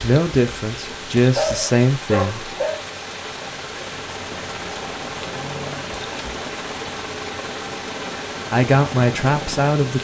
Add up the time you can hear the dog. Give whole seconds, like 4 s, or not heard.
2 s.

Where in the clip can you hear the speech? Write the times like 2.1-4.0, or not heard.
0.0-2.5, 8.5-9.9.